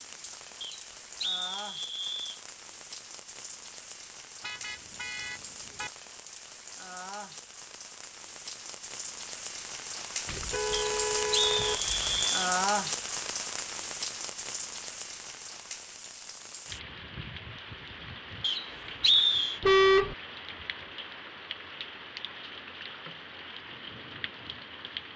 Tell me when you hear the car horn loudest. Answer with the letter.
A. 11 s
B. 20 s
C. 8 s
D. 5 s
B.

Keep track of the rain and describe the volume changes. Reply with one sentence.
The volume of the rain goes up, then down.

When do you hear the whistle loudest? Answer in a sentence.
The volume of the whistle peaks at 19 seconds.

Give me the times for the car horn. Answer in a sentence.
The car horn can be heard from 4.4 to 5.9 s, from 10.2 to 12.2 s and from 19.6 to 20.1 s.